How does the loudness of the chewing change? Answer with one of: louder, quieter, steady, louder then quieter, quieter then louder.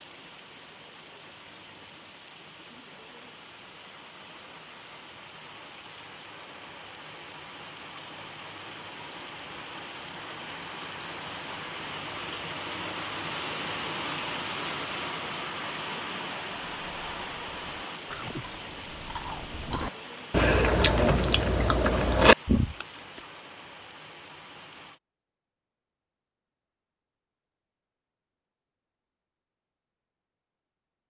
louder.